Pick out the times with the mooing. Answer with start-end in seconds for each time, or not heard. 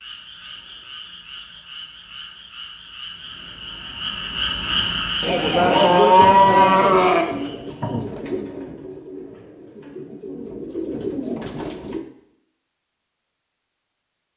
5.2-7.2.